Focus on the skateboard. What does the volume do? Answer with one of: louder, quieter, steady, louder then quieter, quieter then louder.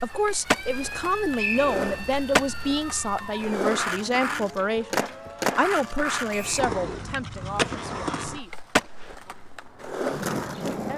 steady.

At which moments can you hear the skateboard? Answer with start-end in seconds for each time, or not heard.
0.0-10.9.